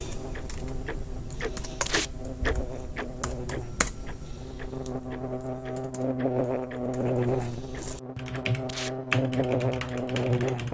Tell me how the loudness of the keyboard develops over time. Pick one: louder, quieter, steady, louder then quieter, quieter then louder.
quieter then louder.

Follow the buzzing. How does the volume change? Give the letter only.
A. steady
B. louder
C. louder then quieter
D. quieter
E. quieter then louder
B.